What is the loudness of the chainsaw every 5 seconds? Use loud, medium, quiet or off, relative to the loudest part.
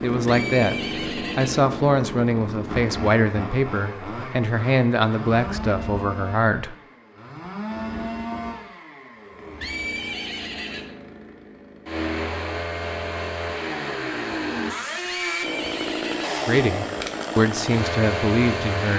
loud, medium, loud, loud.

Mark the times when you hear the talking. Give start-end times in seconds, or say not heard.
0.0-6.8, 16.4-18.9.